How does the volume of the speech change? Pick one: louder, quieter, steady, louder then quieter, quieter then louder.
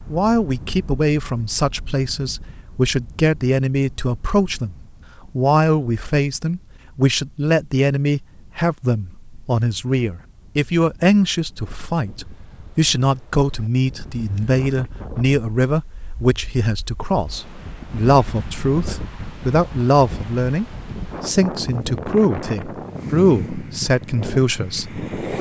steady.